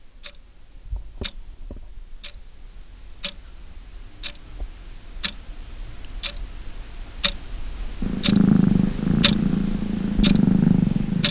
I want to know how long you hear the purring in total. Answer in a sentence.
The purring can be heard for 3 seconds in total.